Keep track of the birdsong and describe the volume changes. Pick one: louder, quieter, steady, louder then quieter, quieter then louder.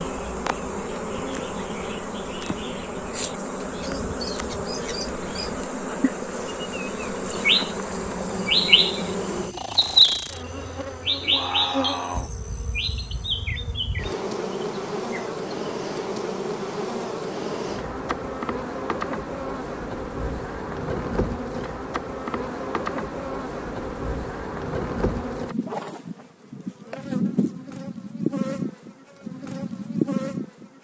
louder then quieter.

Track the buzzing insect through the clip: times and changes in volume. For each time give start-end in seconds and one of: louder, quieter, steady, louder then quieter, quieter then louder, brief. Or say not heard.
0.0-30.7 steady.